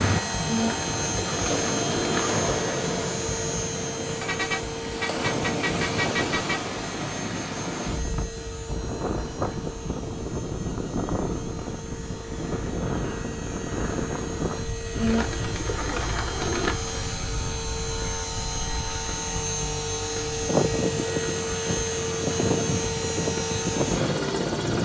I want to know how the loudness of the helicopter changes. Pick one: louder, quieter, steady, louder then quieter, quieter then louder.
quieter then louder.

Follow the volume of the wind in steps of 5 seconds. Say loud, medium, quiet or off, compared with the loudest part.
loud, loud, loud, medium, loud.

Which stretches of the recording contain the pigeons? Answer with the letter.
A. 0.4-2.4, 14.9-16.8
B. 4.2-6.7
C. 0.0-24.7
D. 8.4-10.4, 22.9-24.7
A.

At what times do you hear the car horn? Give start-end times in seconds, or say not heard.
4.2-6.7.